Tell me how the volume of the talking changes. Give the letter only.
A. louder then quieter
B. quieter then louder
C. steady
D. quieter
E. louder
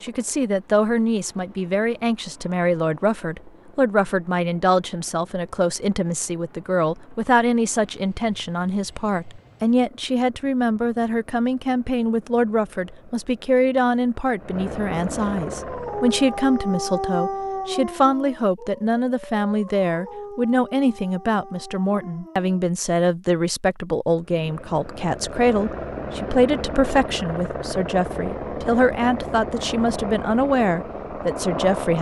C.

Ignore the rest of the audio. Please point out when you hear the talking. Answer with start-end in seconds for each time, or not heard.
0.0-31.9.